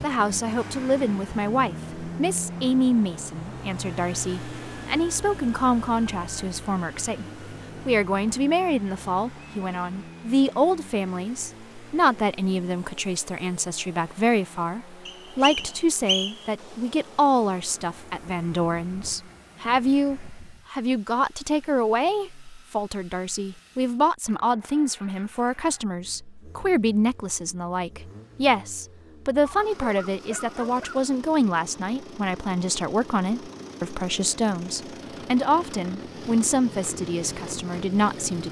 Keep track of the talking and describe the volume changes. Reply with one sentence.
The volume of the talking stays about the same.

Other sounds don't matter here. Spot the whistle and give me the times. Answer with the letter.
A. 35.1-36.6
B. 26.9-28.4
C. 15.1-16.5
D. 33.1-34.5
C.